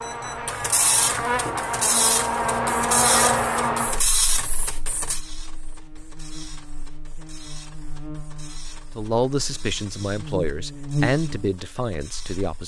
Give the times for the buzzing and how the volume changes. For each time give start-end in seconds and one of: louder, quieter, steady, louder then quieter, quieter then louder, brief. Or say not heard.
0.0-12.3 quieter then louder.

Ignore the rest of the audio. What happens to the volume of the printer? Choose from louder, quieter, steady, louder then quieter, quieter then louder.
quieter.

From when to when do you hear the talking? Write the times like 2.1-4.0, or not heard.
8.9-12.6.